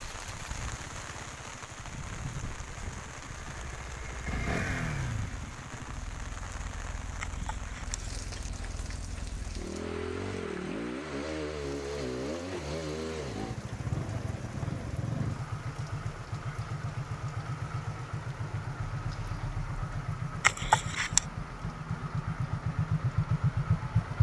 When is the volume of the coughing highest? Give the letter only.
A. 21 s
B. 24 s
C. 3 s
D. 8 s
A.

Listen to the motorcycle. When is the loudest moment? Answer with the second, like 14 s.
24 s.